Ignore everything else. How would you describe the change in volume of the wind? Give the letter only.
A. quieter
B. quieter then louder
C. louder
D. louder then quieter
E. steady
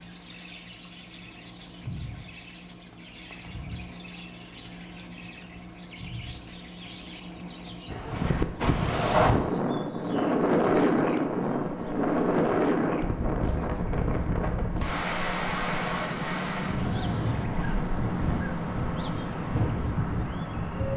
A.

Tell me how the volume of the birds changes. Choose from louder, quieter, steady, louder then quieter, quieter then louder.
louder.